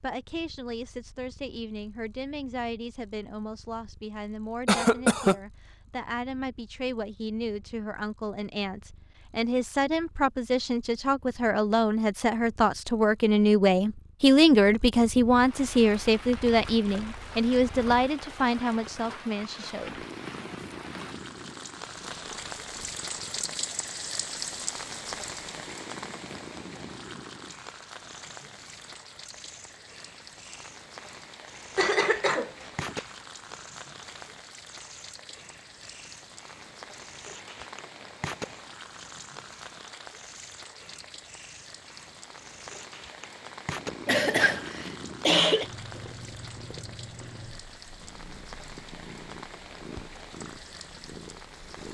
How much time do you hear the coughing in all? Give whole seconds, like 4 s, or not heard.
4 s.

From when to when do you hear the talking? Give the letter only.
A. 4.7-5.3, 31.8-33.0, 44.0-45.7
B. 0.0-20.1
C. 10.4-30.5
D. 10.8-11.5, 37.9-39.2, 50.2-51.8
B.